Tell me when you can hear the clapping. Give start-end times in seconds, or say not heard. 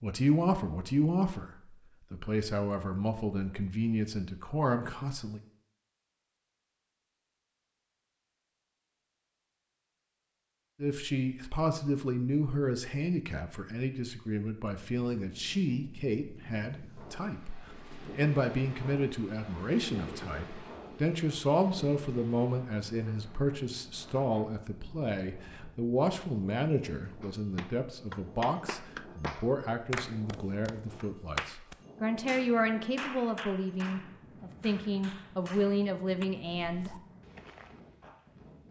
27.2-36.2.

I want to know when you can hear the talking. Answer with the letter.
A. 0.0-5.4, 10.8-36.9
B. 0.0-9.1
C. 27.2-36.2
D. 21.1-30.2
A.